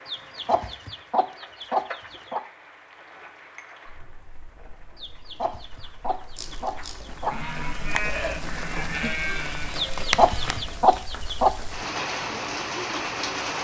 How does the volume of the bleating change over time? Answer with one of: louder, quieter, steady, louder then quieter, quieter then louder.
louder then quieter.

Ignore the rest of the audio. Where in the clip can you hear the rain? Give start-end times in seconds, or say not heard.
0.0-13.5.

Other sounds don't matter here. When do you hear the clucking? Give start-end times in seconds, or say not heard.
0.1-2.4, 5.0-7.3, 9.8-11.5.